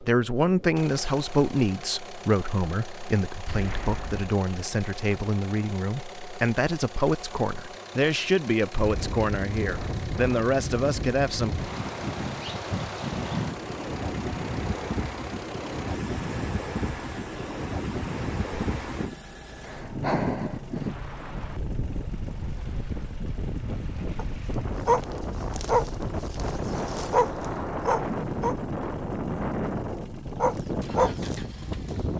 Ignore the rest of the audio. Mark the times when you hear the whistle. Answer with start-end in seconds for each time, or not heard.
not heard.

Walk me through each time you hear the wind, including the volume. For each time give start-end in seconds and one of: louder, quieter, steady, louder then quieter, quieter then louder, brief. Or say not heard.
8.8-32.1 steady.